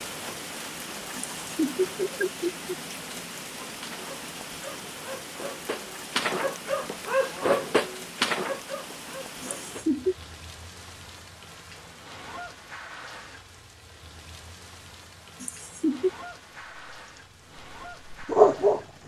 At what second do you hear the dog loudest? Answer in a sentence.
The volume of the dog peaks at 19 seconds.